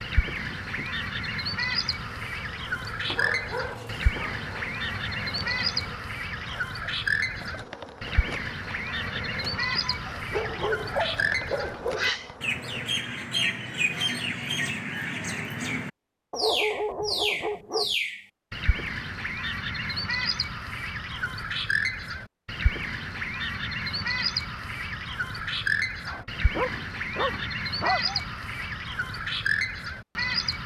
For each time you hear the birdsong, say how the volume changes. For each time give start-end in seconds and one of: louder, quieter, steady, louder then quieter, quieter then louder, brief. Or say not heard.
0.0-30.6 steady.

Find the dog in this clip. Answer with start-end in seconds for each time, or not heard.
3.1-4.8, 9.4-12.1, 16.3-17.9, 26.1-28.6.